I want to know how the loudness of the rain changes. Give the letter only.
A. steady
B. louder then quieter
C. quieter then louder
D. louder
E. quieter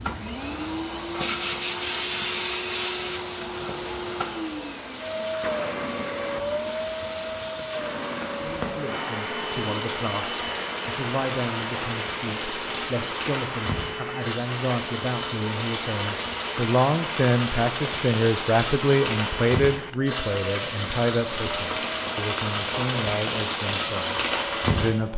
D.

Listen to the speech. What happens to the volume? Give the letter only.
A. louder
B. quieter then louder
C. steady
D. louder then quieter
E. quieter
D.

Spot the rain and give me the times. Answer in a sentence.
The rain can be heard from 0.0 to 24.9 s.